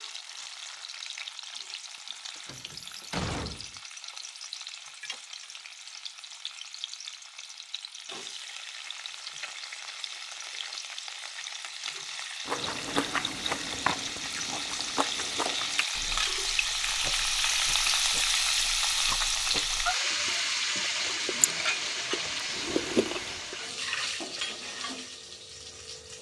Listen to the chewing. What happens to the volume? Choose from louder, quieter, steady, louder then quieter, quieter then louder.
quieter then louder.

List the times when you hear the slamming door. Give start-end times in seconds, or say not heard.
2.5-3.8.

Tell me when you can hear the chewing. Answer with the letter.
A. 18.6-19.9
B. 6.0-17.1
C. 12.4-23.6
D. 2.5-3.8
C.